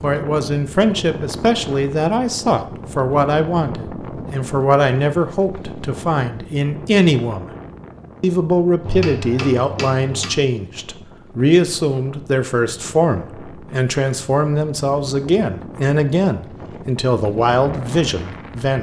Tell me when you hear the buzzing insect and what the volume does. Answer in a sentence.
You can't hear the buzzing insect here.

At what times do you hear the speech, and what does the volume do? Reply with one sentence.
The speech can be heard from 0.0 to 7.5 s, at a steady volume; and from 8.2 to 18.7 s, at a steady volume.